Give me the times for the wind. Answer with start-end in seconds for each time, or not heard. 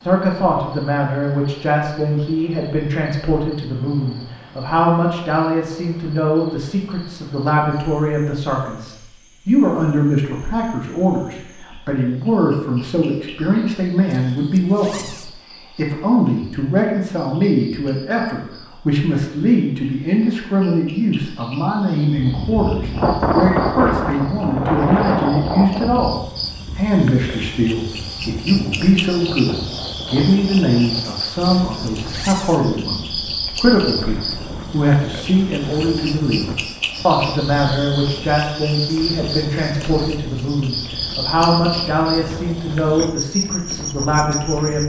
22.2-44.8.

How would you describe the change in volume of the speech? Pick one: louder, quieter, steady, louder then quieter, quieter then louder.
steady.